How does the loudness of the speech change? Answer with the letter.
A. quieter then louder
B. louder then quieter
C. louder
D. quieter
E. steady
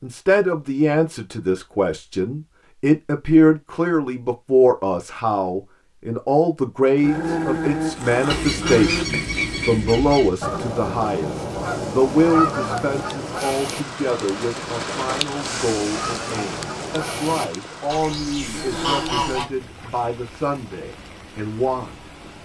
D.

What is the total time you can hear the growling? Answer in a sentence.
You can hear the growling for 3 seconds altogether.